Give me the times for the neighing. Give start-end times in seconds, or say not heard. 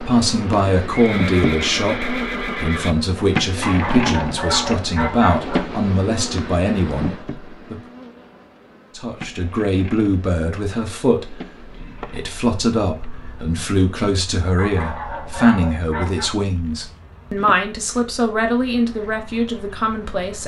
0.9-3.0.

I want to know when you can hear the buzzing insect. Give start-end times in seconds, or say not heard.
0.0-20.4.